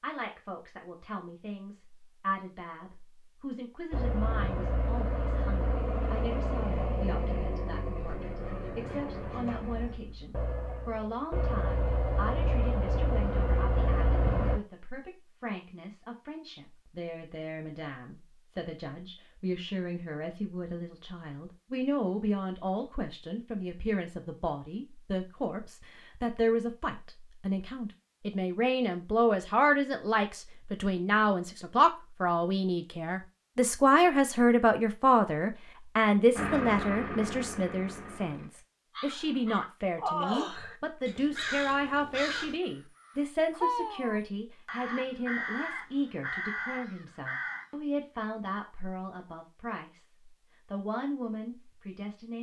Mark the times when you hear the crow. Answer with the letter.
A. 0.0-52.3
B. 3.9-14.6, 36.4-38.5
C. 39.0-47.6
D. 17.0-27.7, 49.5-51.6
C.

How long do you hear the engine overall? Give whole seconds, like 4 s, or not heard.
13 s.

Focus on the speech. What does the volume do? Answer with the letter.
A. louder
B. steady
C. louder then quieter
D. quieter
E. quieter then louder
C.